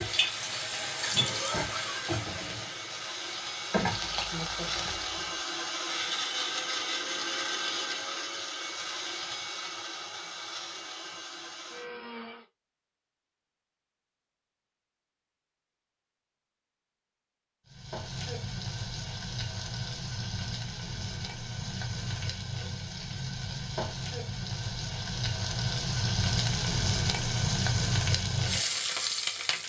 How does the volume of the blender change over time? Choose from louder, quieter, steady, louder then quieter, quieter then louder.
louder then quieter.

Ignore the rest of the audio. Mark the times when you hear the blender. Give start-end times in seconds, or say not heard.
0.0-12.4.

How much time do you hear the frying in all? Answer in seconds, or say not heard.
17 s.